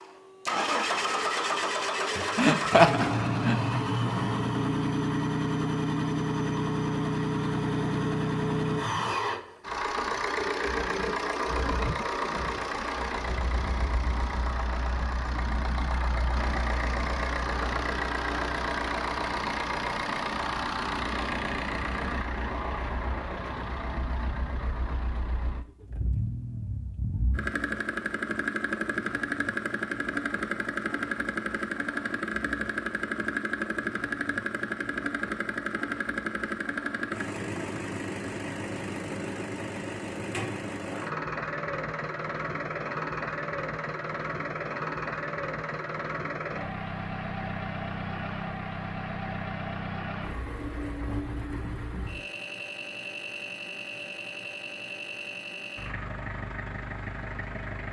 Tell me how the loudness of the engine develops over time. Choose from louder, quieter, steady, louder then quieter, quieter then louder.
quieter.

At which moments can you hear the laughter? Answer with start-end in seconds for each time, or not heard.
2.4-3.6.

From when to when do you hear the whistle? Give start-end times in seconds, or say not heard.
not heard.